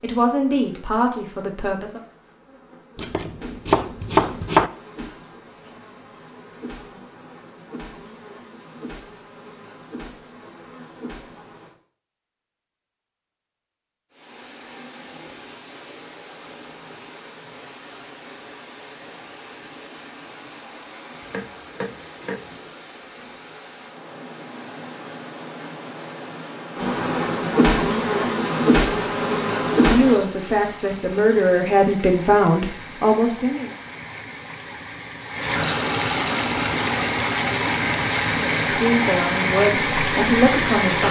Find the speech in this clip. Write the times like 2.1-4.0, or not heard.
0.0-2.0, 29.8-33.7, 38.4-41.0.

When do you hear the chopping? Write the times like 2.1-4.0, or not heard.
3.0-4.7, 21.2-22.4.